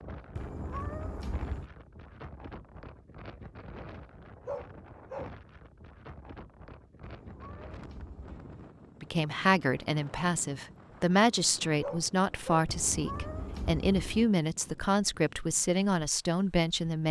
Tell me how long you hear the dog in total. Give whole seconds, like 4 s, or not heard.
2 s.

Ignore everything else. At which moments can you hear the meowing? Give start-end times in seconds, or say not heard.
0.3-1.7, 7.0-8.7, 12.7-14.3.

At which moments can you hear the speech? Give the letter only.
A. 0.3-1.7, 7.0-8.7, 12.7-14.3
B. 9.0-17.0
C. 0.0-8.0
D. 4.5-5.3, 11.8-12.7
B.